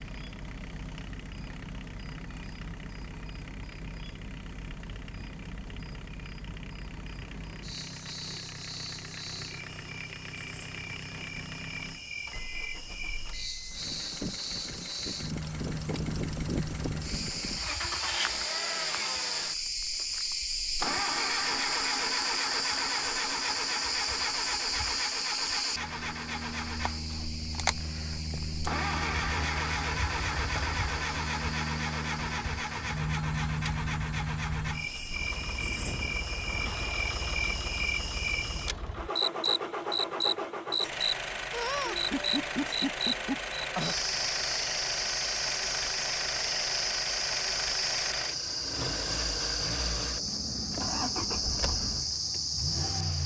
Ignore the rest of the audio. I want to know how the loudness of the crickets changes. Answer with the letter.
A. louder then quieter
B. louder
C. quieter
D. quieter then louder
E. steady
B.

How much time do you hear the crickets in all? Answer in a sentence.
The crickets can be heard for 53 seconds in total.